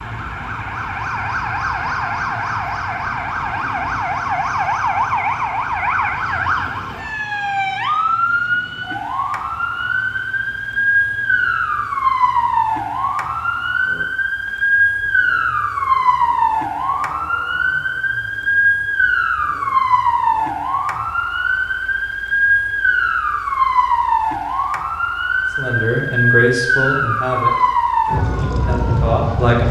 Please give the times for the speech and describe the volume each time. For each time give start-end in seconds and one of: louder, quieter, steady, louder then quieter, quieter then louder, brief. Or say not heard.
25.6-29.6 quieter then louder.